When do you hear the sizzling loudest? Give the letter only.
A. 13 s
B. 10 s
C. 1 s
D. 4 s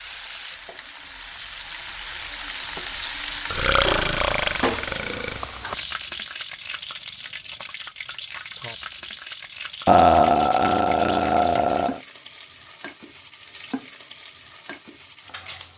D.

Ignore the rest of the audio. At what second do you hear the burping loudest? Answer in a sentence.
The loudest moment of the burping is at 10 seconds.